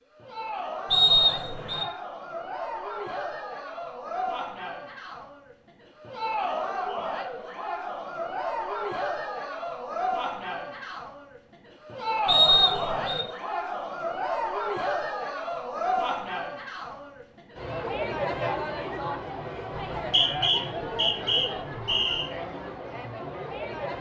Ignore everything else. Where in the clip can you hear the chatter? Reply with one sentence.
The chatter can be heard from 0.1 to 23.9 s.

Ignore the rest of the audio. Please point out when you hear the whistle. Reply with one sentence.
You can hear the whistle from 0.9 to 1.9 s, from 12.2 to 13.2 s and from 19.9 to 22.3 s.